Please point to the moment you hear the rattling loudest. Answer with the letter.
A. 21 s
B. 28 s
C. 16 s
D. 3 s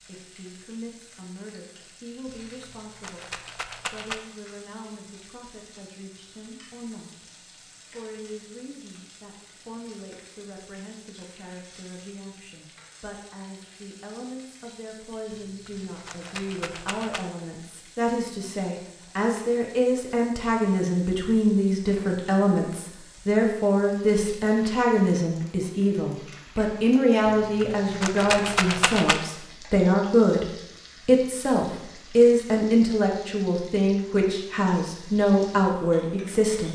B.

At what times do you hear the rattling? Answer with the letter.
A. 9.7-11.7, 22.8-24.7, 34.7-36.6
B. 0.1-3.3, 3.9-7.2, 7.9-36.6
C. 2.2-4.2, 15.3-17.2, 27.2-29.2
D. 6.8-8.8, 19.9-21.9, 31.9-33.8
C.